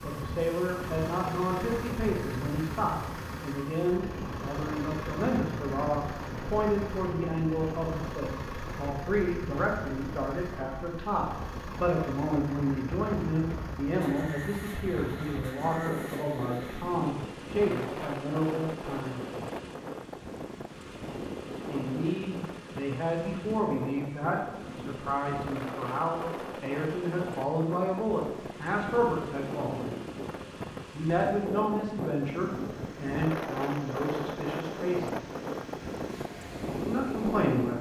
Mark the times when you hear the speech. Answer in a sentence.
You can hear the speech from 0.0 to 19.4 s, from 21.6 to 29.9 s, from 30.9 to 35.2 s and from 36.9 to 37.7 s.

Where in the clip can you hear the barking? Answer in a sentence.
You can't hear the barking here.